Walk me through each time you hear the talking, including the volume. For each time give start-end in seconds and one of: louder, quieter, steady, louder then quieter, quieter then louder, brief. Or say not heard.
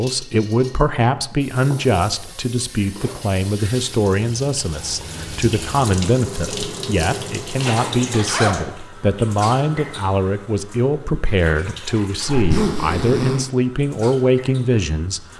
0.0-15.3 steady.